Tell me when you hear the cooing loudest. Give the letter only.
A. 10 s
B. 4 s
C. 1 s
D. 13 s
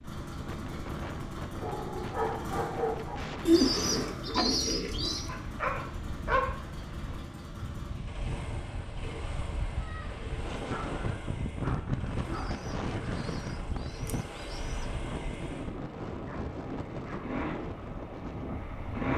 B.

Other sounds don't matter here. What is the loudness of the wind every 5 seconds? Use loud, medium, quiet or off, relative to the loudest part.
medium, medium, loud, loud.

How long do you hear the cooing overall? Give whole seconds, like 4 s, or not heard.
5 s.